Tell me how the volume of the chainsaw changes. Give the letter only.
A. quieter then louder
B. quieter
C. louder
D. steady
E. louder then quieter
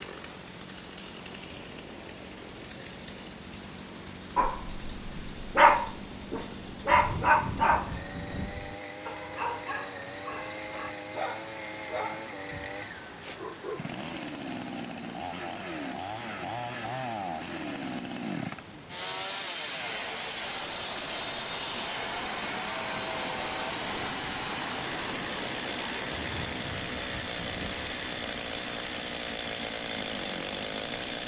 C.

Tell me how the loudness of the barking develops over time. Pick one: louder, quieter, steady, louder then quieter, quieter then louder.
quieter.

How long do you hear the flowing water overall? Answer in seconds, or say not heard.
31 s.